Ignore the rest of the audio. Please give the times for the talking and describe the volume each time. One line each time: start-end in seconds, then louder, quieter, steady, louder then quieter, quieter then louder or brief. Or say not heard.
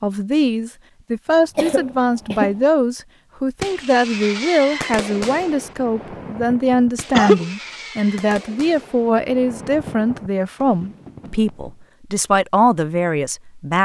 0.0-13.8 steady.